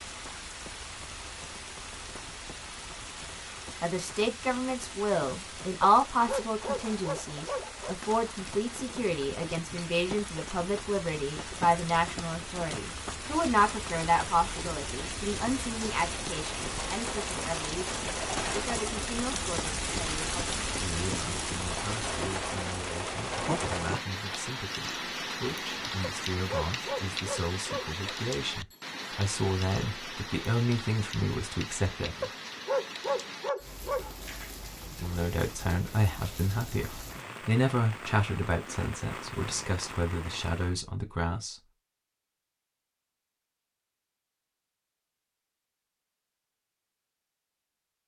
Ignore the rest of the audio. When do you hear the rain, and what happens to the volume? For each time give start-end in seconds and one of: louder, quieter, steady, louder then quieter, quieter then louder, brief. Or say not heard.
0.0-40.8 louder then quieter.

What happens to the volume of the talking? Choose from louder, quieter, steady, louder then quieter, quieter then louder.
quieter then louder.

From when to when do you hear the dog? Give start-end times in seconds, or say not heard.
5.8-8.0, 26.0-28.1, 32.2-34.1.